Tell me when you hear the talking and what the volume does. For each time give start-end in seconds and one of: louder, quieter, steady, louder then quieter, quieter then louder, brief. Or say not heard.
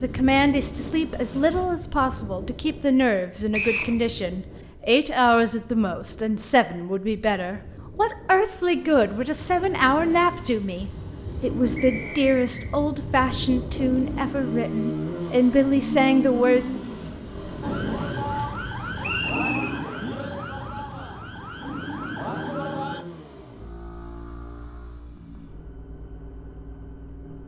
0.0-16.8 steady.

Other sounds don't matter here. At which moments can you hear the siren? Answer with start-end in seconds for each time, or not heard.
17.6-23.1.